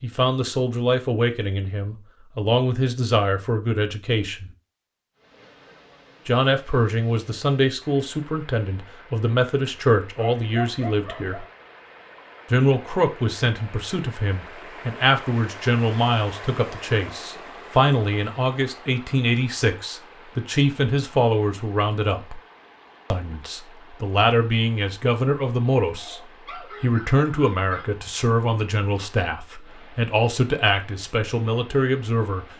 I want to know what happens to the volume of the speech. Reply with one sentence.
The loudness of the speech stays about the same.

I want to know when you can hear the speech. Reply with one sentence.
You can hear the speech from 0.0 to 4.5 s, from 6.2 to 11.4 s, from 12.5 to 22.4 s, from 23.1 to 26.2 s and from 26.8 to 32.5 s.